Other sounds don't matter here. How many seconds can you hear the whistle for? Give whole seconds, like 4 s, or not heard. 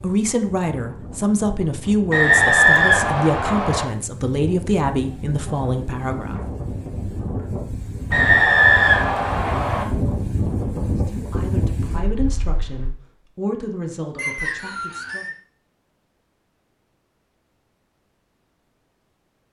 5 s.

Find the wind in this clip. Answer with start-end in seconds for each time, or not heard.
0.0-12.9.